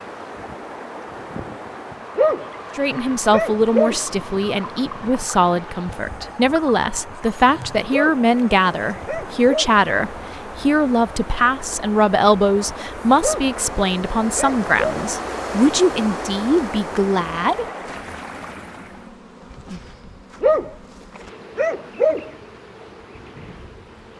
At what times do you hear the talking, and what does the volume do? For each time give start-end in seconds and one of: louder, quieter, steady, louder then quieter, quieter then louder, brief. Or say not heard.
2.8-17.6 steady.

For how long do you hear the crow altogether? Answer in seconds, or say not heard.
not heard.